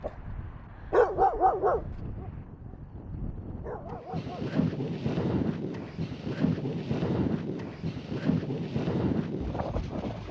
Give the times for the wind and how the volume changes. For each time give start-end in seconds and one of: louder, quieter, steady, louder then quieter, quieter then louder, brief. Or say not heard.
0.0-10.2 louder.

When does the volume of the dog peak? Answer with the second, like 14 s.
1 s.